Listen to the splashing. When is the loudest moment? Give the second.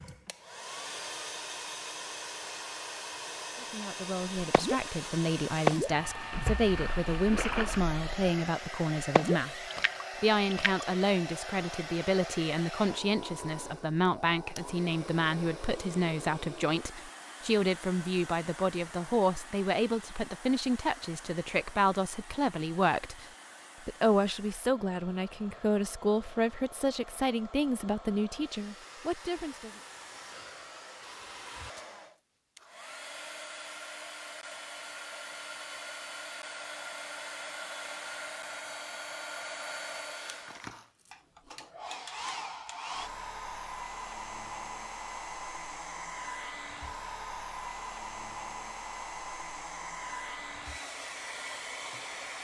6 s.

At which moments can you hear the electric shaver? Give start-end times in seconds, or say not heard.
not heard.